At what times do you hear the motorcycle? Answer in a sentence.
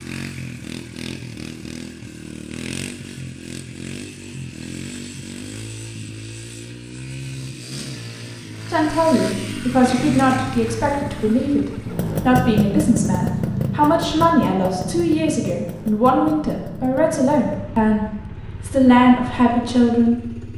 You can hear the motorcycle from 0.0 to 20.5 s.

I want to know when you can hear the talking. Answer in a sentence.
The talking can be heard from 8.7 to 20.3 s.